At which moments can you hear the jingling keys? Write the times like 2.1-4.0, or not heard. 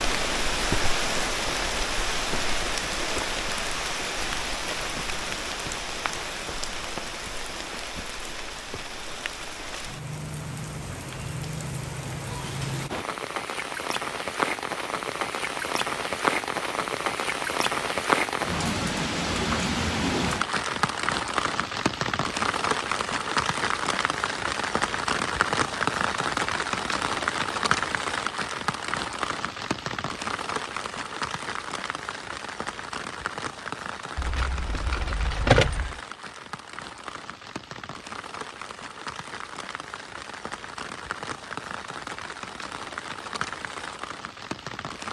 34.1-36.0.